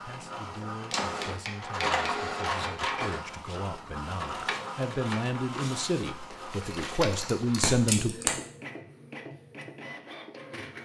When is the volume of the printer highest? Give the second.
2 s.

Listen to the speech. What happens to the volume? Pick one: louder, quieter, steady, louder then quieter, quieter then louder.
louder.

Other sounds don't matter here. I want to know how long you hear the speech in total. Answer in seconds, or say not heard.
8 s.